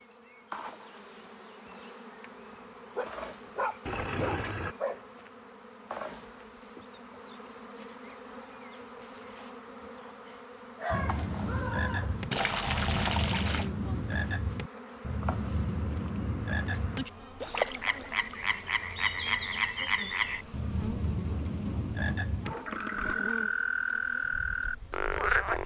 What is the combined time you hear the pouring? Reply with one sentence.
You can hear the pouring for 3 seconds altogether.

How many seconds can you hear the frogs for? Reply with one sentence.
You can hear the frogs for 15 seconds altogether.